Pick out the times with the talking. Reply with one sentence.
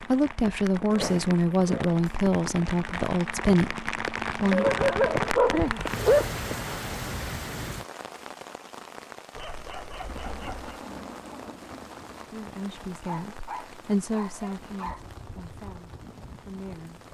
You can hear the talking from 0.0 to 4.7 s and from 12.3 to 17.0 s.